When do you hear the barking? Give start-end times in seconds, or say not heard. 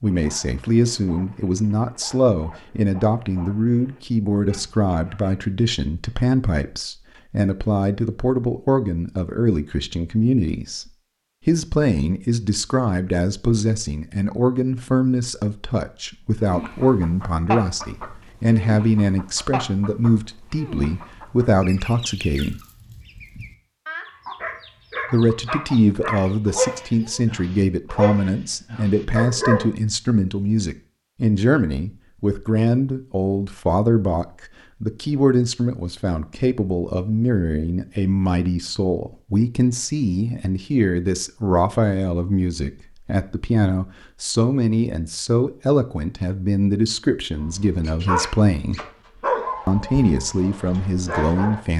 0.0-5.3, 24.4-29.7, 47.4-51.6.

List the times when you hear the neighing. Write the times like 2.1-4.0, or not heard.
not heard.